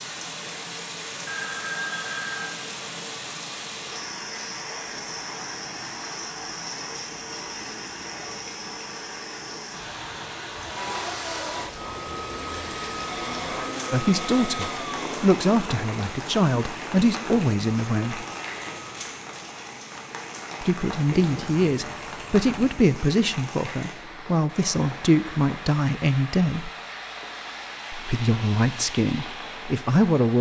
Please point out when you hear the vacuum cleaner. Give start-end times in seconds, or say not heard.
10.6-19.1.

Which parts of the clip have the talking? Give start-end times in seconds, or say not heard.
13.9-18.2, 20.6-26.7, 27.9-30.3.